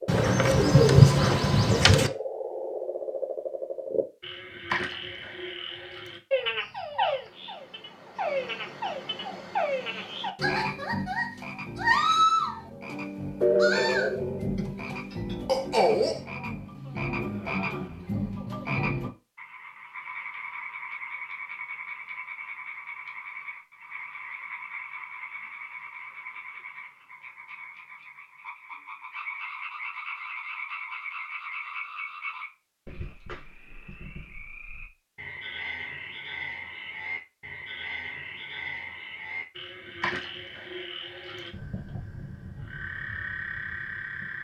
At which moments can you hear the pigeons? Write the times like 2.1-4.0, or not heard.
0.1-2.1.